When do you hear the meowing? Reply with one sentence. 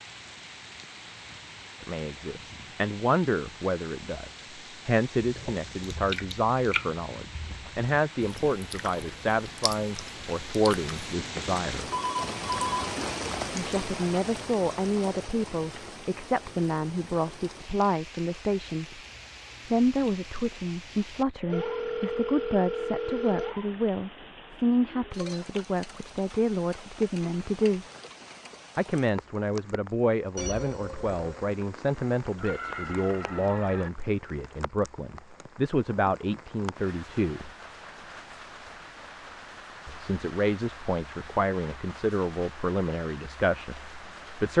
You can hear the meowing from 32.4 to 33.9 s.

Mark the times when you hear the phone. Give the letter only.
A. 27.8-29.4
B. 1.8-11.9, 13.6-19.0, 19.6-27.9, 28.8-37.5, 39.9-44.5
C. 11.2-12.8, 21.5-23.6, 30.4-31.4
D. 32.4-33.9
C.